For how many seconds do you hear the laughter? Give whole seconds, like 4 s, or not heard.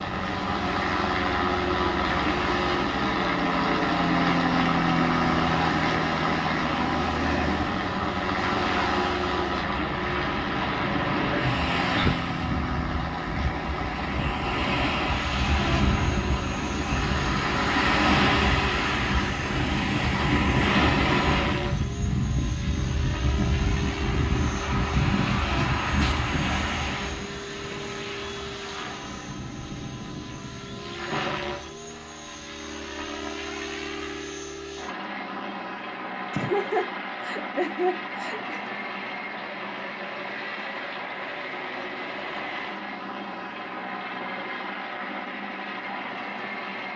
3 s.